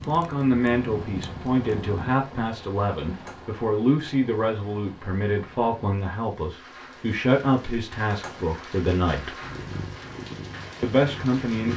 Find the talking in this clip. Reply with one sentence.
You can hear the talking from 0.1 to 9.3 s and from 10.8 to 11.7 s.